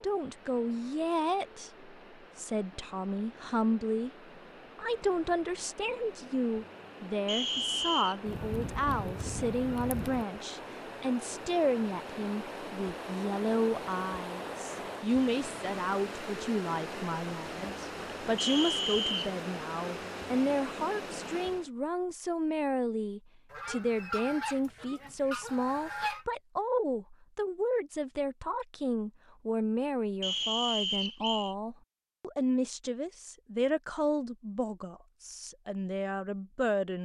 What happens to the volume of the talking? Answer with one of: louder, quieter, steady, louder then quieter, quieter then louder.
steady.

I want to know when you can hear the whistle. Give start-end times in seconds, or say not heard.
7.2-8.2, 18.4-19.4, 30.2-31.6.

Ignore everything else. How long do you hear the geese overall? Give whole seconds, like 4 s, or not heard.
5 s.